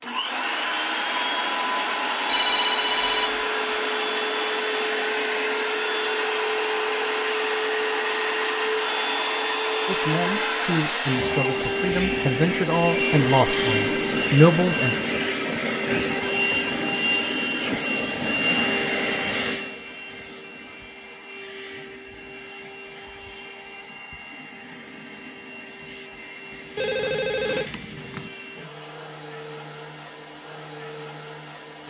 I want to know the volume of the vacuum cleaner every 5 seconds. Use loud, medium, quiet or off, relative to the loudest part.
loud, loud, loud, loud, quiet, quiet, quiet.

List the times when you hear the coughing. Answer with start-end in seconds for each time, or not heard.
not heard.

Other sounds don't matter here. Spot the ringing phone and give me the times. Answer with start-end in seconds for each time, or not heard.
2.2-3.4, 12.9-13.6, 26.8-28.3.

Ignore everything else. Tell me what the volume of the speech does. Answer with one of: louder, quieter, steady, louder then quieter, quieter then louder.
louder.